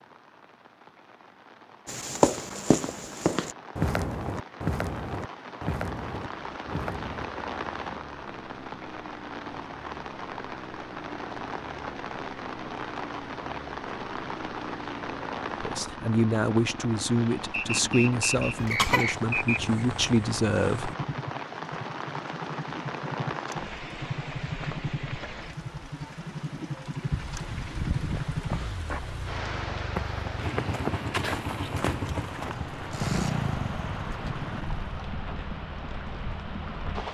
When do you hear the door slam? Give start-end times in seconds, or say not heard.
not heard.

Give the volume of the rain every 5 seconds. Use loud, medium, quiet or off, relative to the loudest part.
medium, loud, loud, loud, loud, loud, loud, loud.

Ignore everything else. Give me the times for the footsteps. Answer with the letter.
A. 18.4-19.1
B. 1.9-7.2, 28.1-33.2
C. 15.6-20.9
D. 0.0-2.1
B.